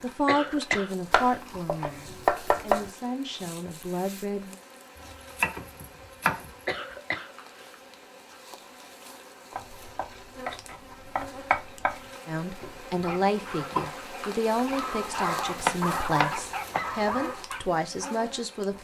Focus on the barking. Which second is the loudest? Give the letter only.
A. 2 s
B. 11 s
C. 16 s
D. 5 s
C.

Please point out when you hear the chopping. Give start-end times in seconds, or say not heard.
1.1-2.9, 5.3-6.8, 9.6-12.0, 15.6-17.1.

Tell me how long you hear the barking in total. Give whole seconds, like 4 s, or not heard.
5 s.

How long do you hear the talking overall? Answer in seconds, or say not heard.
11 s.